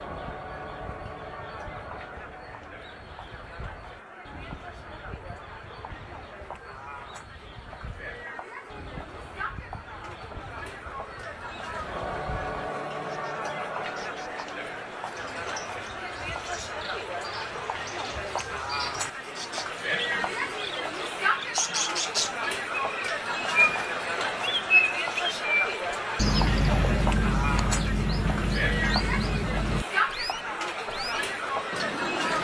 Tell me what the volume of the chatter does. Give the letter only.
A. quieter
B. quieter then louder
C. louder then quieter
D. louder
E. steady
D.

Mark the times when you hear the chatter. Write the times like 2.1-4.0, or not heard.
0.0-32.3.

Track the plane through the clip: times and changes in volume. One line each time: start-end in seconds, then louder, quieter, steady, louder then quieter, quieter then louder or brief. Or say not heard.
not heard.